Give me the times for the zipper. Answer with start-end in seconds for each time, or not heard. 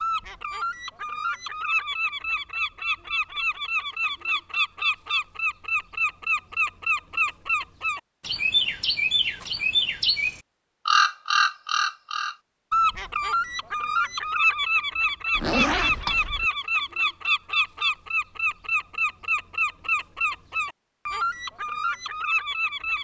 15.3-16.5.